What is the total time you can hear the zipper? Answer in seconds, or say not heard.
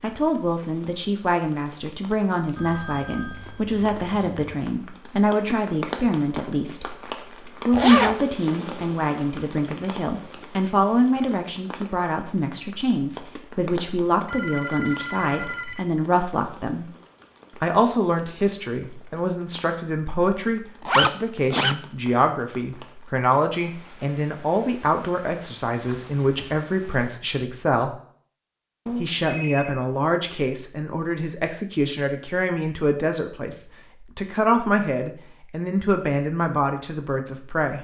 2 s.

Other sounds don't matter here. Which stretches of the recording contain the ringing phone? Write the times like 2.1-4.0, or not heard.
2.5-4.5, 14.2-15.9, 28.9-29.8.